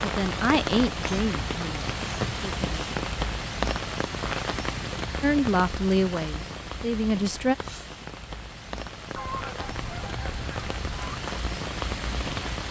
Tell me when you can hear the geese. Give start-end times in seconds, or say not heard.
9.2-11.2.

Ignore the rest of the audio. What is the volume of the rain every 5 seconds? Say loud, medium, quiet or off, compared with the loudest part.
loud, medium, loud.